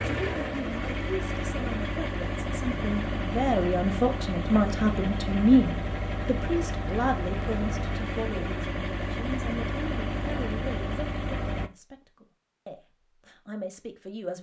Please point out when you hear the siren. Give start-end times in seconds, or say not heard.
not heard.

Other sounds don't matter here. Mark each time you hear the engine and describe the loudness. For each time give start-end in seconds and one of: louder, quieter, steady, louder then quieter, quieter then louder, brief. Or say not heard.
0.0-11.7 steady.